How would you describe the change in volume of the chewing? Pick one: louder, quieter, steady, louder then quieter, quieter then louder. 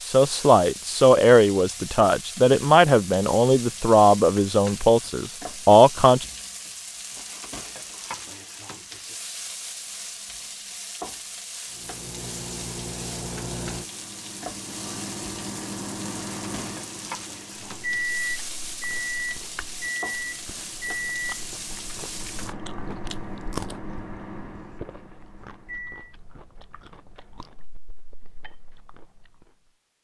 louder then quieter.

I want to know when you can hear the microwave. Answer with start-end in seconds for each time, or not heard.
11.7-26.1.